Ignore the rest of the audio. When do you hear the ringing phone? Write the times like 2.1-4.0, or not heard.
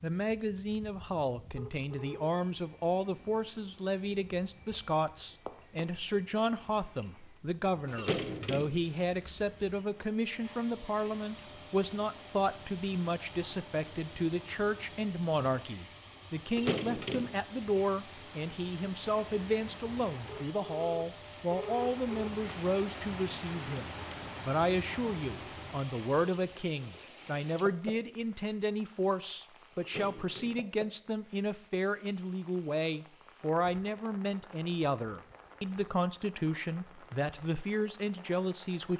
1.6-2.3, 20.2-22.3.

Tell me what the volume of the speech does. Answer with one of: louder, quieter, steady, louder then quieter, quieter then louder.
steady.